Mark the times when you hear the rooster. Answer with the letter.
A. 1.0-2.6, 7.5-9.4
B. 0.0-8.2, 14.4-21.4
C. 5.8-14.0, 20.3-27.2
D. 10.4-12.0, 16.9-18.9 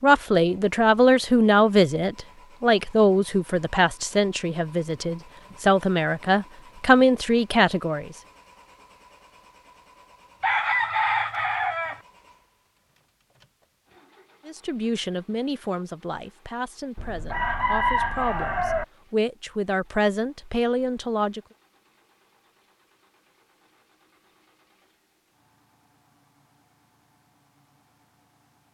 D.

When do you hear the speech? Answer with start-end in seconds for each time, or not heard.
0.0-8.2, 14.4-21.4.